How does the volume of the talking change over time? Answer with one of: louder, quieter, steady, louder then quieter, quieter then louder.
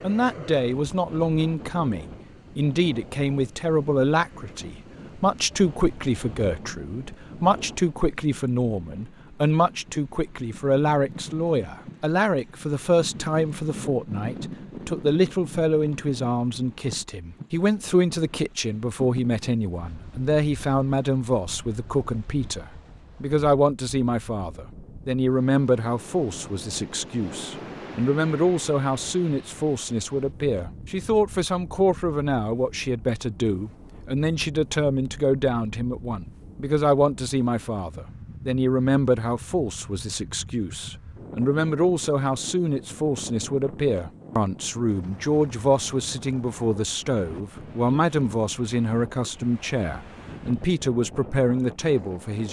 steady.